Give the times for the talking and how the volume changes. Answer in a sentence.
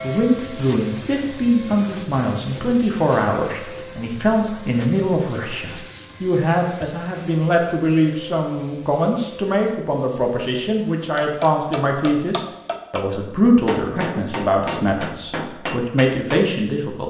The talking can be heard from 0.0 to 17.0 s, at a steady volume.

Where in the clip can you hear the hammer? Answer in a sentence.
The hammer can be heard from 10.8 to 16.4 s.